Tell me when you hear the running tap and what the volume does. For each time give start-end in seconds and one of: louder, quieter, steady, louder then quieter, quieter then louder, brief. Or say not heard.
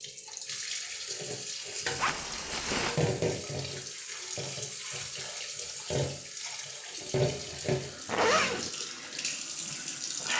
0.0-10.3 steady.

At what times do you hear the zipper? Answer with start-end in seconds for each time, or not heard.
1.9-3.0, 8.1-8.7.